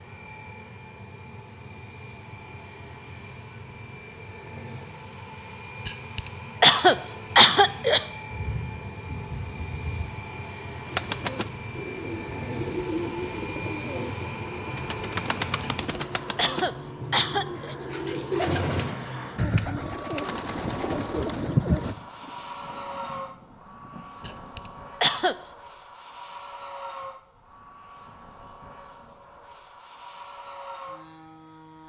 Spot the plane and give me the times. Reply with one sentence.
The plane can be heard from 0.0 to 31.8 s.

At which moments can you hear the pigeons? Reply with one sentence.
The pigeons can be heard from 10.8 to 21.9 s.